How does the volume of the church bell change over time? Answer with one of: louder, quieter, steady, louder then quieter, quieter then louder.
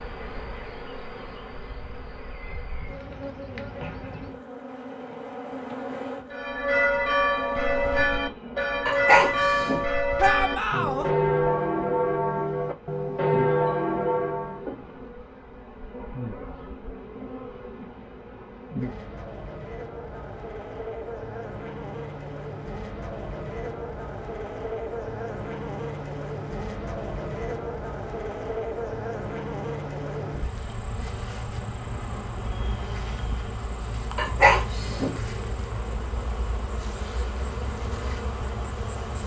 steady.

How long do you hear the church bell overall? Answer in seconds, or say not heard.
8 s.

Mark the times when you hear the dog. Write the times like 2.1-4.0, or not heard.
8.8-9.8, 34.1-35.1.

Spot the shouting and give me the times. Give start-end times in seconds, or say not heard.
10.2-11.1.